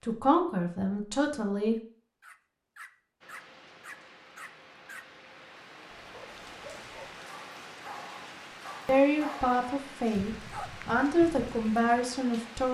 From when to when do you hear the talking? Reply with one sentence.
The talking can be heard from 0.1 to 1.8 s and from 8.8 to 12.7 s.